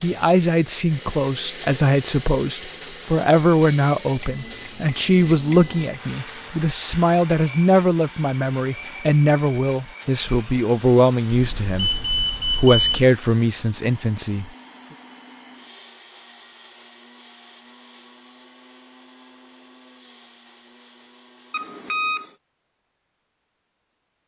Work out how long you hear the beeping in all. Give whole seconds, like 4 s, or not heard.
4 s.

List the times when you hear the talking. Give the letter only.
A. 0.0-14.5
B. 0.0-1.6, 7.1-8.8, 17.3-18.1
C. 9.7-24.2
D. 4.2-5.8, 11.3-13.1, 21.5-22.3
A.